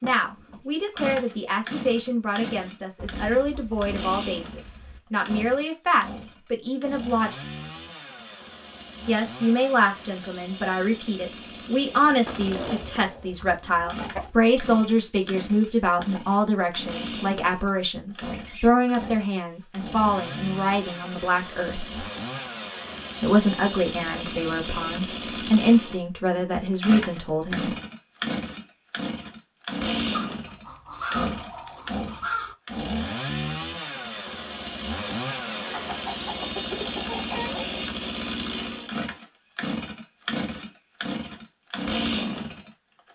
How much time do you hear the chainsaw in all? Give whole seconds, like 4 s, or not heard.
43 s.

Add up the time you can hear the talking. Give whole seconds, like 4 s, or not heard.
25 s.